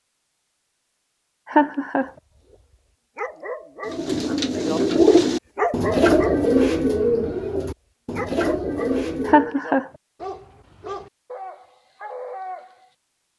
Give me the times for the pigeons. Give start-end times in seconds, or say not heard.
3.9-9.6.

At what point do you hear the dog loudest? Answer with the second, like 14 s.
6 s.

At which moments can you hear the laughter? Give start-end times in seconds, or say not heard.
1.4-2.1, 9.2-9.8.